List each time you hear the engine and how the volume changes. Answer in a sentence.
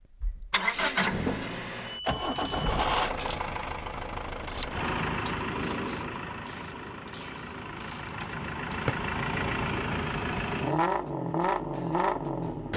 You can hear the engine from 0.1 to 12.7 s, getting quieter then louder.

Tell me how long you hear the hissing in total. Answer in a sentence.
You can hear the hissing for 3 seconds altogether.